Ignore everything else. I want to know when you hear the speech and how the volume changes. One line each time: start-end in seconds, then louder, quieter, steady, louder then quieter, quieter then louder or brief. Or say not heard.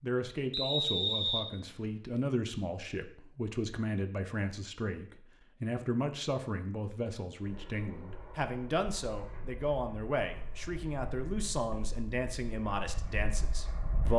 0.0-14.1 steady.